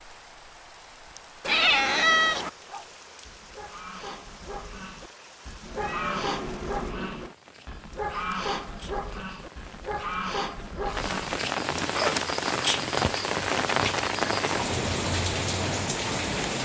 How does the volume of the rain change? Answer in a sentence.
The loudness of the rain goes up.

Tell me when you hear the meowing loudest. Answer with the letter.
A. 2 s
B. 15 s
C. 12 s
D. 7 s
A.